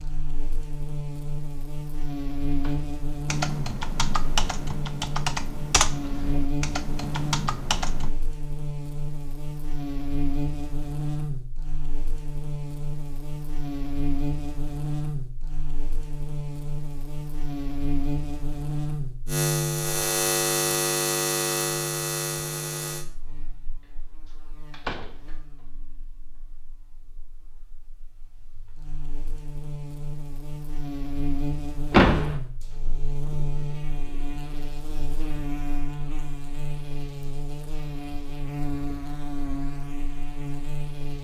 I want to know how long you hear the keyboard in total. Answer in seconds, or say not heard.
5 s.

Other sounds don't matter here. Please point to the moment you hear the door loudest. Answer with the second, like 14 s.
32 s.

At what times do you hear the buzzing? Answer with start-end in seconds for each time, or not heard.
0.0-41.1.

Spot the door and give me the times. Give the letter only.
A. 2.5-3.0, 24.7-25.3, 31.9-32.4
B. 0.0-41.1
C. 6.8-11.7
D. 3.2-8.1
A.